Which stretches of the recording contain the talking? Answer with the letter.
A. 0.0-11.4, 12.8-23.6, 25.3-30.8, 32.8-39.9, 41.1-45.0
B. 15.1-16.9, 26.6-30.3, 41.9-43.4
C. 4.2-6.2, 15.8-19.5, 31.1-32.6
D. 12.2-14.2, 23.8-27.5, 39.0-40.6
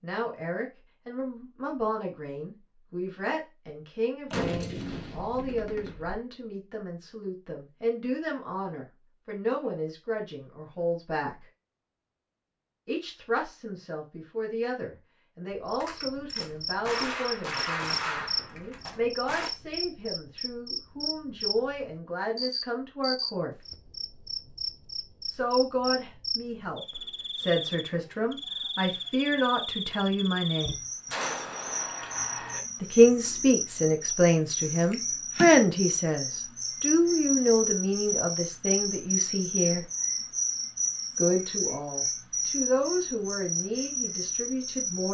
A.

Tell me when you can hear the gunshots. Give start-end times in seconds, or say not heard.
4.2-6.2, 15.8-19.5, 31.1-32.6.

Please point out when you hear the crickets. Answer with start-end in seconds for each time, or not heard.
15.5-45.0.